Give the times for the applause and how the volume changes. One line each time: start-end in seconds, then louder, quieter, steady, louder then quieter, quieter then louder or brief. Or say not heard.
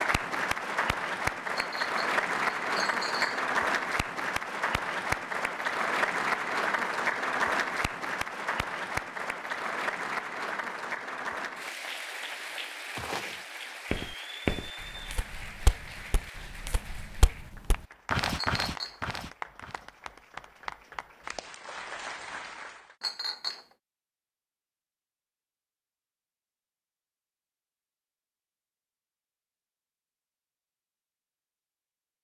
0.0-22.9 quieter.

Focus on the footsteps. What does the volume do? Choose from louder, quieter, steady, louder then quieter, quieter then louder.
quieter then louder.